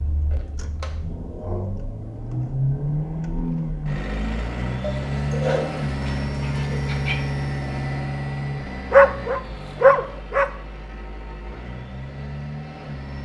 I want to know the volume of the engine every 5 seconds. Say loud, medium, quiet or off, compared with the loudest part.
loud, loud, medium.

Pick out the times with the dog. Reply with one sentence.
You can hear the dog from 0.3 to 1.7 s, from 4.8 to 7.2 s and from 8.9 to 10.4 s.